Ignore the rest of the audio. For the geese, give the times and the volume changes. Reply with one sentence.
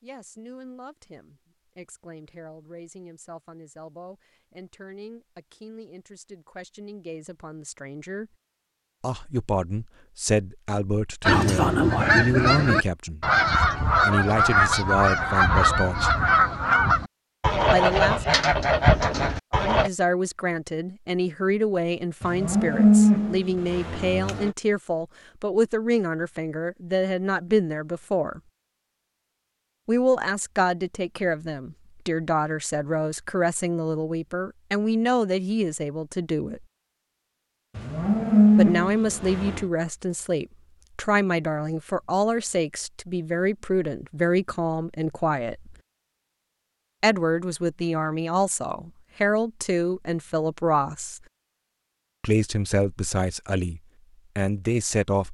You can hear the geese from 11.2 to 19.9 s, at a steady volume.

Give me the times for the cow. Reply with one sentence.
You can hear the cow from 22.2 to 24.5 s and from 37.8 to 39.6 s.